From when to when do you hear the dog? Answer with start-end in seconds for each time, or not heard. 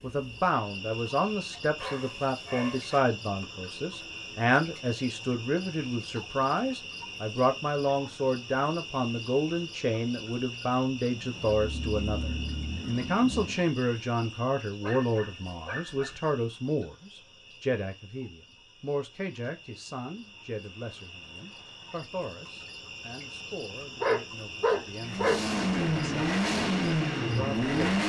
1.8-3.0, 14.8-16.2, 24.0-25.4.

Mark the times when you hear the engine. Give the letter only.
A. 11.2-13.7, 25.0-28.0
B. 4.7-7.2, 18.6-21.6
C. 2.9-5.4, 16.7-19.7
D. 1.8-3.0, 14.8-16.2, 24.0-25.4
A.